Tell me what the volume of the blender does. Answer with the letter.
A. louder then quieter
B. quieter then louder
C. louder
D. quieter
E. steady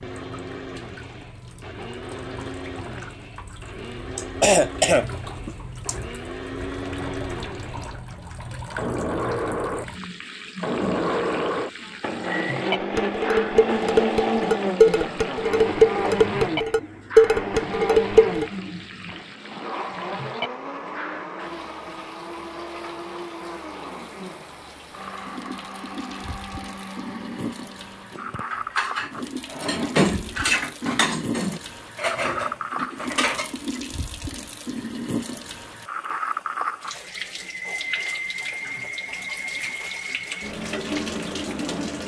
A.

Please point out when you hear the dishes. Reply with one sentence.
You can hear the dishes from 12.9 to 18.4 s and from 28.1 to 33.8 s.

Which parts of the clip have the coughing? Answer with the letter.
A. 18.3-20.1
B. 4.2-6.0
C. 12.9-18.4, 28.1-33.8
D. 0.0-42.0
B.